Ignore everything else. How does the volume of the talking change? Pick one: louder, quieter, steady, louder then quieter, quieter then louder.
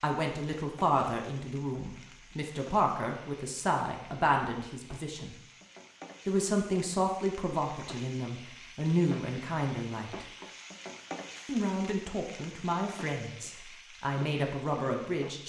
steady.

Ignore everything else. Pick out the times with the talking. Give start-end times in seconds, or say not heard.
0.0-5.3, 6.2-10.2, 11.4-15.4.